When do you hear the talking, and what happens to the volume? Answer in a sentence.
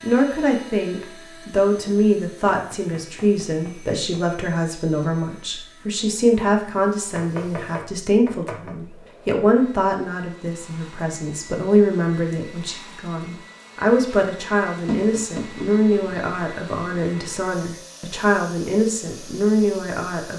You can hear the talking from 0.0 to 20.3 s, at a steady volume.